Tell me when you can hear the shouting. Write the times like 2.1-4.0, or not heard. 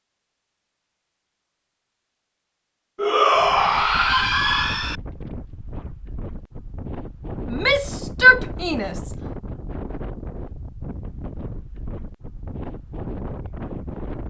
3.0-5.0, 7.5-9.1.